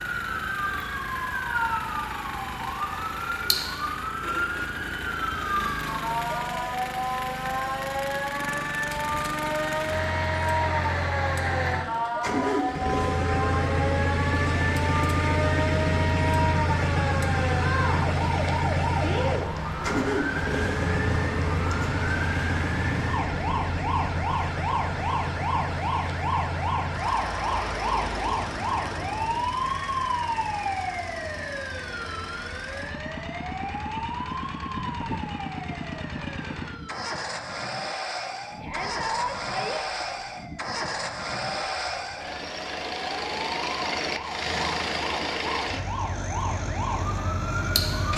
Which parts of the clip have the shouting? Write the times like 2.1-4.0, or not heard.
38.6-40.0.